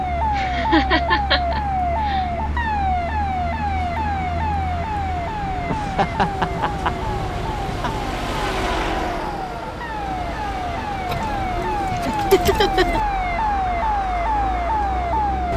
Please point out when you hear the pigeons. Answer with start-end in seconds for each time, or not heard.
11.1-13.0.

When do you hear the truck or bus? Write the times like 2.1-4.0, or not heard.
0.0-15.5.